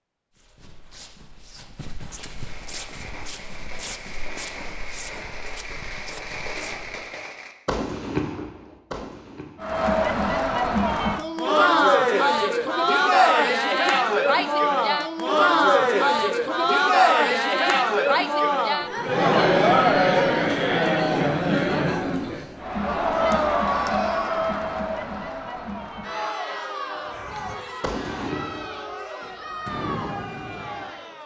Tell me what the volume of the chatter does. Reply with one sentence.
The volume of the chatter goes down.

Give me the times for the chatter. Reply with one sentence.
You can hear the chatter from 9.6 to 31.2 s.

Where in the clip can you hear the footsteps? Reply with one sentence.
You can hear the footsteps from 0.3 to 7.0 s.